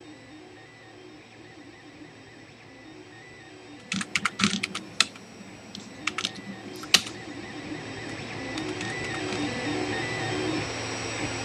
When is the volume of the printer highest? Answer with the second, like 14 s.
10 s.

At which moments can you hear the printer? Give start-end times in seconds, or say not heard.
0.0-11.4.